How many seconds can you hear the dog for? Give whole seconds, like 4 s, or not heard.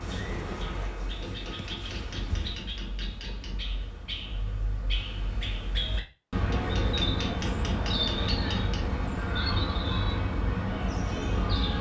not heard.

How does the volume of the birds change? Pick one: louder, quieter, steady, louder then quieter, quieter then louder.
louder.